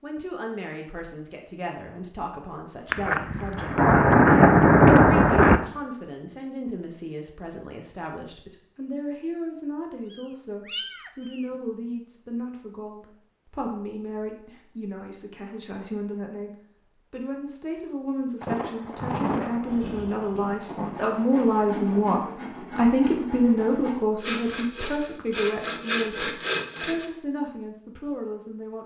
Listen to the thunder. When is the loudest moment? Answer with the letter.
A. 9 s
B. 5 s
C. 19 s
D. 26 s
B.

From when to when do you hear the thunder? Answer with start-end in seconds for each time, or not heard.
2.9-5.6, 18.4-22.1.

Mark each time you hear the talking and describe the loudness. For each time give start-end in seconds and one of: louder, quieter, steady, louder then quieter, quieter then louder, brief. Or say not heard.
0.0-16.5 steady
17.1-28.8 louder then quieter.